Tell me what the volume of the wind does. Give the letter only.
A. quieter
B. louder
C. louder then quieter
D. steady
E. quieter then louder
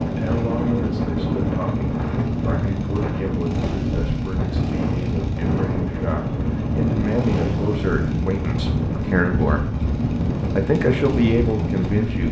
D.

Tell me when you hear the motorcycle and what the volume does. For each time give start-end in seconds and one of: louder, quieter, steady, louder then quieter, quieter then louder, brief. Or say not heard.
0.0-12.2 steady.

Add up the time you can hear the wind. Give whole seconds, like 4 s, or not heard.
12 s.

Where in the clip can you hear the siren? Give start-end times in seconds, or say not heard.
not heard.